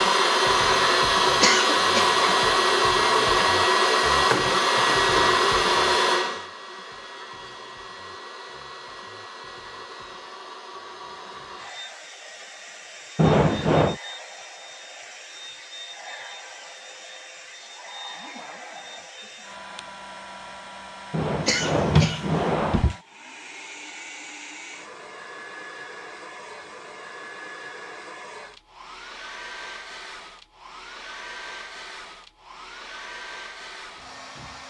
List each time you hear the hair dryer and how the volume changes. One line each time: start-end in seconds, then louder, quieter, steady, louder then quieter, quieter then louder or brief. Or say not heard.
0.0-34.6 quieter.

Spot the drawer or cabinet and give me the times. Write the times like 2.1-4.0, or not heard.
13.2-13.9, 21.1-22.9.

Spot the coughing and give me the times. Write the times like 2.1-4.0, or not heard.
1.4-2.0, 21.4-22.4.